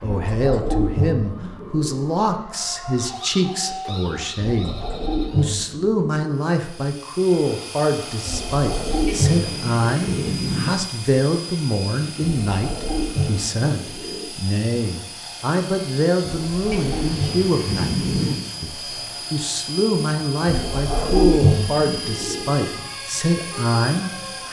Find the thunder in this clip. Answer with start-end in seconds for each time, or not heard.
9.1-10.7, 16.7-18.4.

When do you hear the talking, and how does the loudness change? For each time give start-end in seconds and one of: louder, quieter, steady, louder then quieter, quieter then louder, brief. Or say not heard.
0.0-24.4 steady.